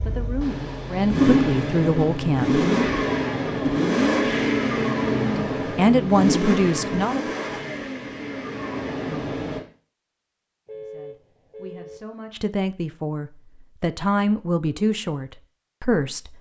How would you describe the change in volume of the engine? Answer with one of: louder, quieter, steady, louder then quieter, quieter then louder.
quieter.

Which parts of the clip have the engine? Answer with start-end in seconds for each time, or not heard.
0.0-9.6.